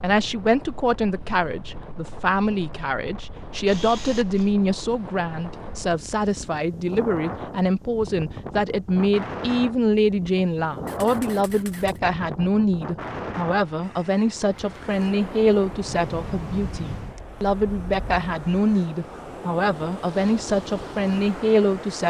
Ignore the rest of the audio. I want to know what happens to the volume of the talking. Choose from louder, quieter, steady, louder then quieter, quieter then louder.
steady.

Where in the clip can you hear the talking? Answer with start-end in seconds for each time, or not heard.
0.0-22.0.